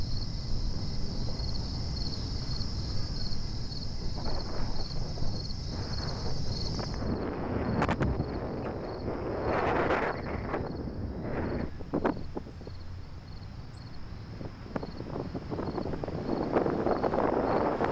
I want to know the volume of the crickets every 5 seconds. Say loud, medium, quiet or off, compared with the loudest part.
loud, loud, medium, medium.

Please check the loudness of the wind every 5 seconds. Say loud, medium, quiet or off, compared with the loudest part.
quiet, loud, medium, loud.